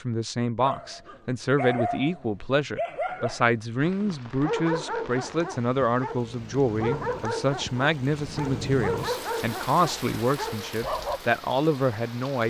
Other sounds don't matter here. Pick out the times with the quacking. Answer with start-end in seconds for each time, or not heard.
not heard.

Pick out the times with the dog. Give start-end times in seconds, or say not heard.
0.6-11.2.